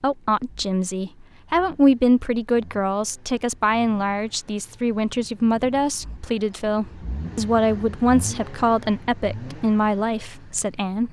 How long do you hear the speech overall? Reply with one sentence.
The speech can be heard for 11 seconds in total.